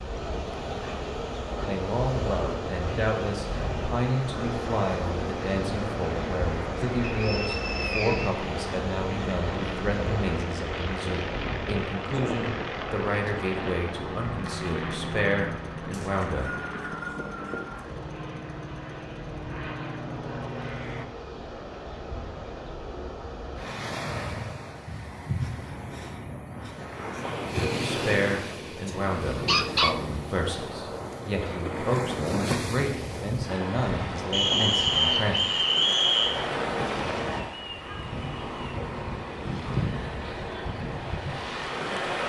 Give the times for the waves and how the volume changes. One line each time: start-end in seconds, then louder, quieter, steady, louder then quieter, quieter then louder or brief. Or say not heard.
0.0-42.2 quieter then louder.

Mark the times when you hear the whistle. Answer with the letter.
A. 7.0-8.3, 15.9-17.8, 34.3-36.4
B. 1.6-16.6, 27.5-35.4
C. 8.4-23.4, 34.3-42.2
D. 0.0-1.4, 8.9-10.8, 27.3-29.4
A.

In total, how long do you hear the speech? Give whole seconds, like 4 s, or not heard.
23 s.